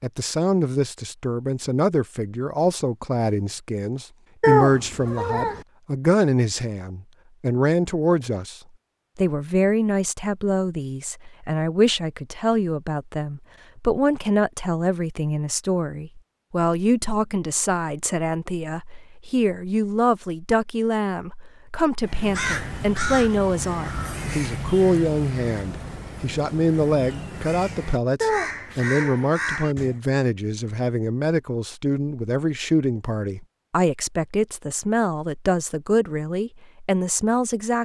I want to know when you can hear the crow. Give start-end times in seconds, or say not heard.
22.0-29.9.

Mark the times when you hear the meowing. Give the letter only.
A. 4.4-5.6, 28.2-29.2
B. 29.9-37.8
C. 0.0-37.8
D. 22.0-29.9
A.